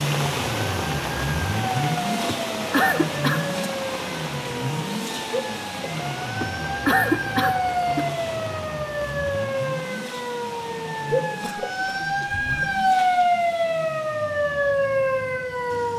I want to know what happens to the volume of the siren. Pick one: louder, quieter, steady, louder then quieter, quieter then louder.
louder.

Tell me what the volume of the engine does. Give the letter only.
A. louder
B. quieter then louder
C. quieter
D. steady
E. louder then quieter
C.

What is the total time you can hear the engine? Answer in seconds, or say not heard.
16 s.